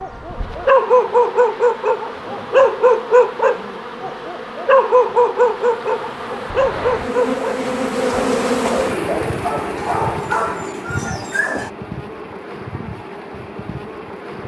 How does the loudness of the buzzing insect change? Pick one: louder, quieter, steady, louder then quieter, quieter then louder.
louder then quieter.